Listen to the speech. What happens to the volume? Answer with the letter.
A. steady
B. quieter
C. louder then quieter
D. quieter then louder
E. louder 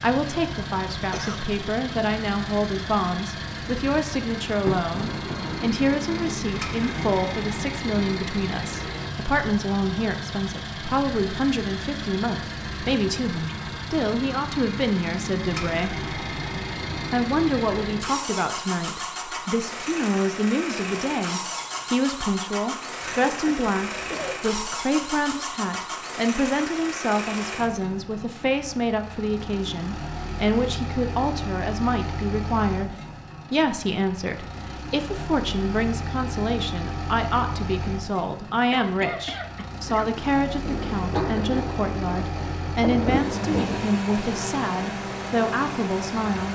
A.